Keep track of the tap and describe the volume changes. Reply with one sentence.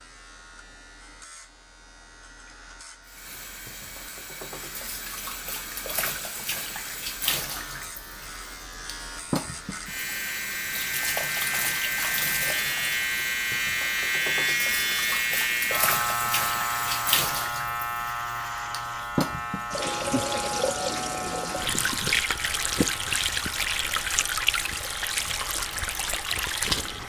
The volume of the tap goes up.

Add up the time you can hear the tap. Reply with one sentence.
The tap can be heard for 24 seconds in total.